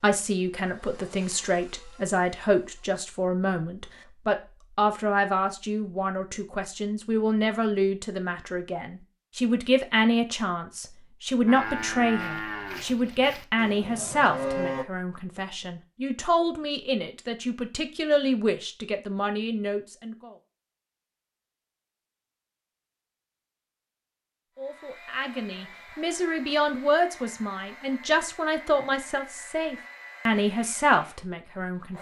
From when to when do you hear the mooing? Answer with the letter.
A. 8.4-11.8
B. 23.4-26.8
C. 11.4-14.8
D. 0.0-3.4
C.